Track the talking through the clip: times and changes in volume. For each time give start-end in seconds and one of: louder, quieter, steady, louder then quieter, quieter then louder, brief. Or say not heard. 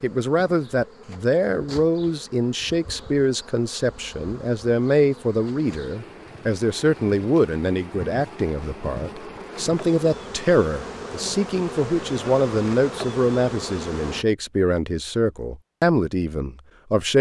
0.0-17.1 steady.